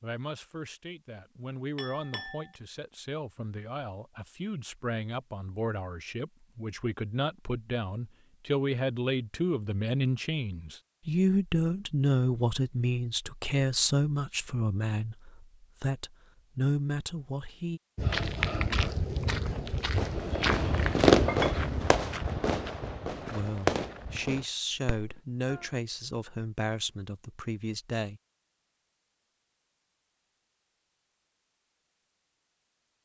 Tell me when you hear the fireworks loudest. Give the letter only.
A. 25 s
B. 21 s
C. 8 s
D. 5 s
B.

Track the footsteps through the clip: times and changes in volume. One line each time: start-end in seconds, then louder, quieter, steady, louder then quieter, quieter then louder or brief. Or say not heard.
17.9-24.5 quieter.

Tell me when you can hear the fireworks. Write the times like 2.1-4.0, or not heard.
19.4-25.6.